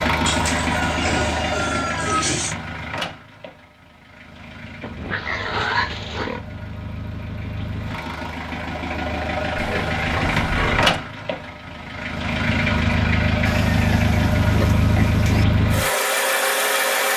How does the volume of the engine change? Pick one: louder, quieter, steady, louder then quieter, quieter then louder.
quieter then louder.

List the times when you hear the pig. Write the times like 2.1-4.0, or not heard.
0.2-2.5, 4.8-6.5, 9.6-10.9, 13.4-15.4.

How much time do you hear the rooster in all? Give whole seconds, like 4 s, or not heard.
2 s.